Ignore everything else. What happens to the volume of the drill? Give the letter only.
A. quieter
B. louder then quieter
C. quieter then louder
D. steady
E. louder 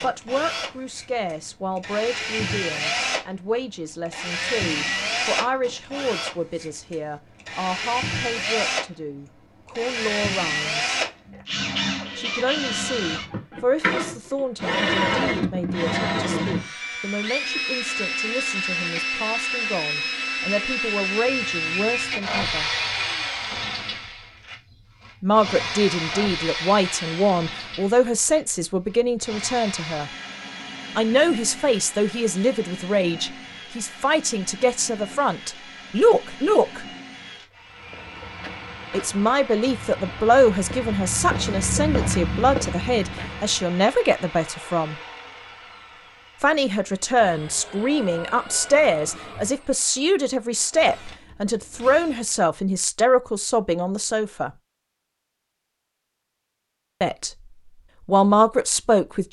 A.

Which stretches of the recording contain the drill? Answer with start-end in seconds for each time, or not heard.
0.0-52.3.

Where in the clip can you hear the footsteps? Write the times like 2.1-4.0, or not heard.
37.6-43.8.